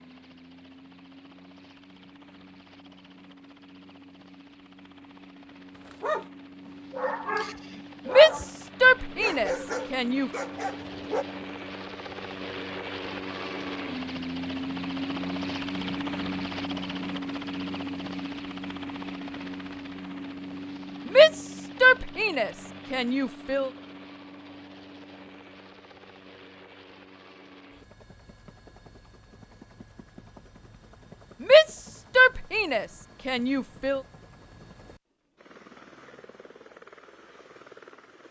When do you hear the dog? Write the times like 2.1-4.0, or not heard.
5.8-11.2.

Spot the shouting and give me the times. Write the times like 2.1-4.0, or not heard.
8.1-10.3, 21.1-23.7, 31.4-34.0.